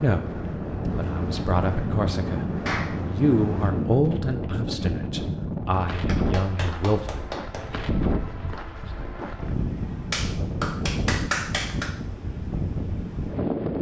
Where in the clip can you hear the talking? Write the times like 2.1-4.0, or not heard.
0.0-2.5, 3.1-7.3.